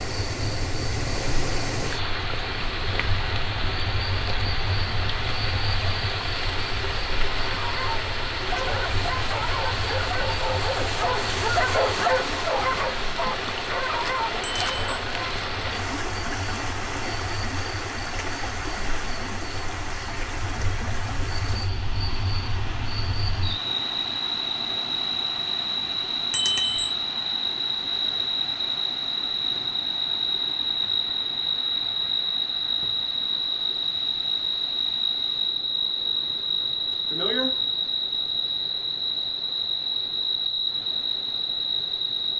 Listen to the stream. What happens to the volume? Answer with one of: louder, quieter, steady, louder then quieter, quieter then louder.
quieter.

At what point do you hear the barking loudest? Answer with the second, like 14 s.
12 s.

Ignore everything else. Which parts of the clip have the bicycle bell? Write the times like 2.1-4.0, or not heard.
14.4-15.0, 26.3-26.9.